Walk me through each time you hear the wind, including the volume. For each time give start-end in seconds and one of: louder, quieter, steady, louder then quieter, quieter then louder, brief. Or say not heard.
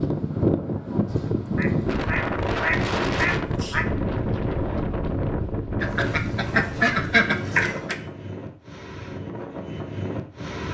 0.0-10.6 quieter.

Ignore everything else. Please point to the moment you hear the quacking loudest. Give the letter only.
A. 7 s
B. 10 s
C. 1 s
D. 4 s
A.